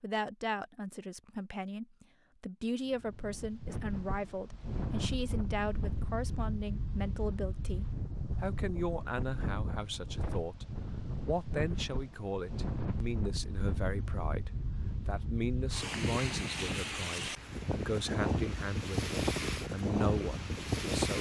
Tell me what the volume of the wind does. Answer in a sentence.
The volume of the wind goes up.